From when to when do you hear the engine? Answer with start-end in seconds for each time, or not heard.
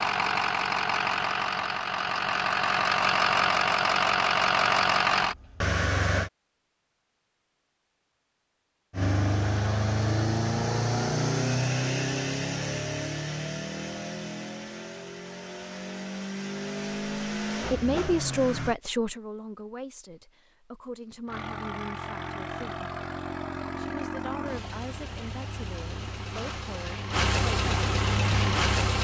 0.0-6.3, 8.9-18.8, 21.2-28.9.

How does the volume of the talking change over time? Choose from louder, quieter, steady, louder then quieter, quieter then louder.
quieter.